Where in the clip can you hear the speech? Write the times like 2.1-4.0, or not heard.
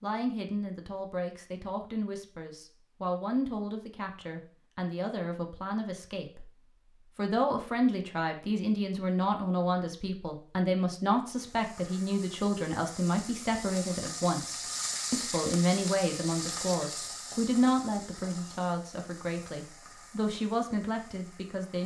0.0-6.5, 7.2-21.8.